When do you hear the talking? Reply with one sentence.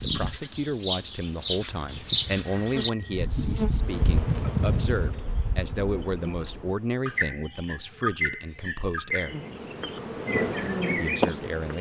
You can hear the talking from 0.0 to 9.3 s and from 10.9 to 11.7 s.